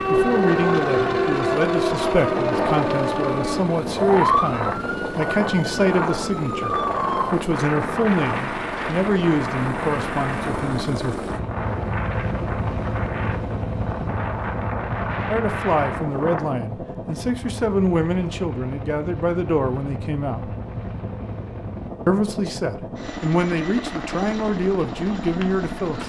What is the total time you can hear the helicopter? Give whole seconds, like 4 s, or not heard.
26 s.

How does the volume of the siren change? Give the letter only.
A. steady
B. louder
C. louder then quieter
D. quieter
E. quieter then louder
D.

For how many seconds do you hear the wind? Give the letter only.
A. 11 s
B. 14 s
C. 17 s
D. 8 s
C.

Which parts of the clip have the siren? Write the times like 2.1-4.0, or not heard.
0.0-7.3.